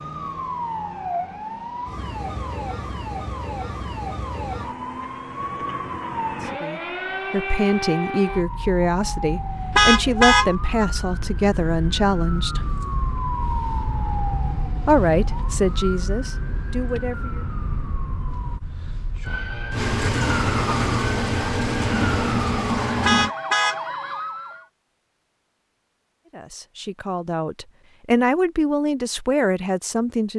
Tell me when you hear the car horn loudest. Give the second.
10 s.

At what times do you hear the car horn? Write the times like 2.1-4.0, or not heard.
9.8-10.5, 23.1-23.8.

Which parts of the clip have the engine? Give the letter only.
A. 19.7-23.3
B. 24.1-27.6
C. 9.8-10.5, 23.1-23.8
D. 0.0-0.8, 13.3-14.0
A.